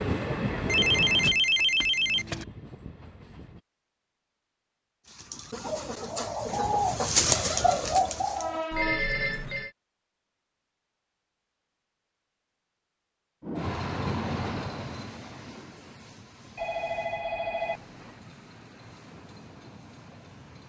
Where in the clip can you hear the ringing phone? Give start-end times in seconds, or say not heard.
0.7-2.5, 8.7-9.7, 16.6-18.1.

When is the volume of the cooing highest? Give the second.
7 s.